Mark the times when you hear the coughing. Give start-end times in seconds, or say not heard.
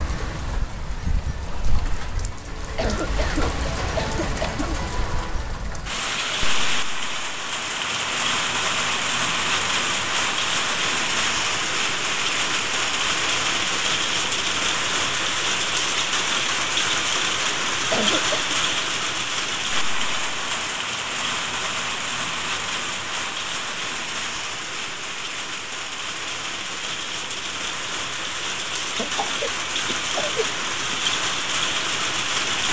2.8-4.8, 17.9-18.6, 28.9-30.6.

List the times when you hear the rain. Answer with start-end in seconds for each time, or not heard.
0.0-32.6.